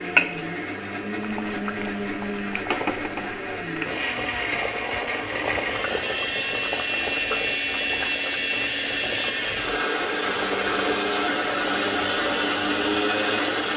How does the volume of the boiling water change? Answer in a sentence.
The volume of the boiling water stays about the same.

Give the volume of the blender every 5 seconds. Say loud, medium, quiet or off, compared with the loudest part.
medium, loud, loud.